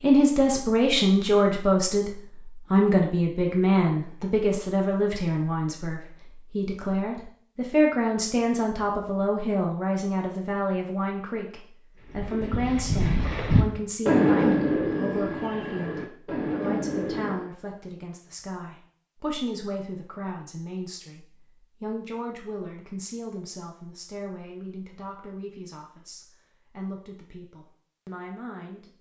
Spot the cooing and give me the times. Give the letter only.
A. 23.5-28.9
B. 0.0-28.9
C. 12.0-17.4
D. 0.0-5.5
C.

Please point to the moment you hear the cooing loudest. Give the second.
14 s.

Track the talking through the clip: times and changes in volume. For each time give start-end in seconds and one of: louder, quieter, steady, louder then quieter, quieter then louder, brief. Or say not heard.
0.0-28.9 quieter.